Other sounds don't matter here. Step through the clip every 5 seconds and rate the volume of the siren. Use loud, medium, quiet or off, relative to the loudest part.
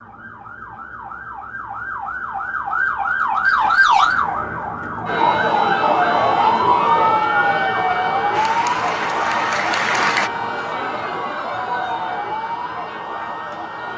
loud, loud, medium.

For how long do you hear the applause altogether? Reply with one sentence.
You can hear the applause for 2 seconds altogether.